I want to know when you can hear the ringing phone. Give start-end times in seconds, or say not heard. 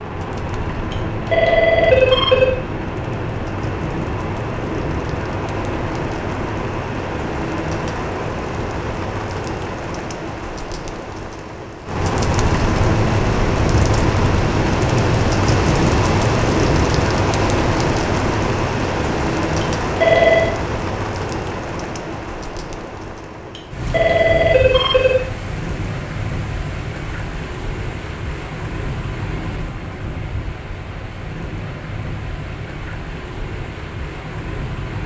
0.9-2.5, 19.6-20.6, 23.6-25.2.